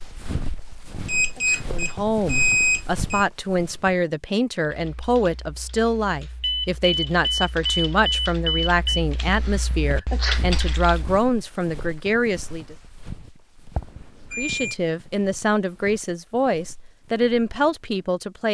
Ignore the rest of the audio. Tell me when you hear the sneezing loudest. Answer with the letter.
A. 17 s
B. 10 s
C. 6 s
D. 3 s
B.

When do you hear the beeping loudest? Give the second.
3 s.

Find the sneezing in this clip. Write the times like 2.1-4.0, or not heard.
1.2-1.7, 9.9-10.4.